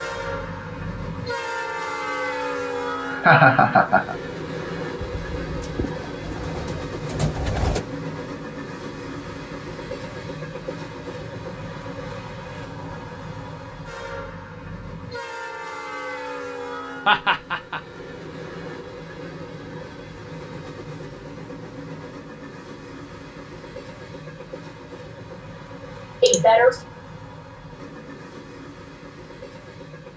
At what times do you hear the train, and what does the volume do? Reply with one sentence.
You can hear the train from 0.0 to 30.1 s, getting quieter.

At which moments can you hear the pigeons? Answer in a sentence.
You can hear the pigeons from 5.0 to 7.8 s.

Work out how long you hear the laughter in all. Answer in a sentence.
You can hear the laughter for 2 seconds altogether.